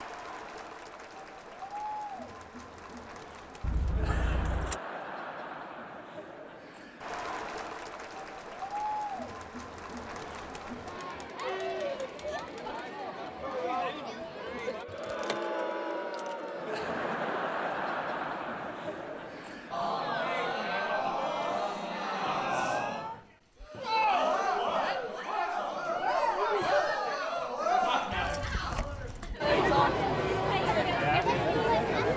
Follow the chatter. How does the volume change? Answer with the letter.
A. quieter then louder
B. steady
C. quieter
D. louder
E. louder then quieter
D.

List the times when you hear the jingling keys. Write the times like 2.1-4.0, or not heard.
3.6-4.8, 14.8-16.4, 28.1-29.4.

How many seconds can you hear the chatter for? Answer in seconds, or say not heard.
32 s.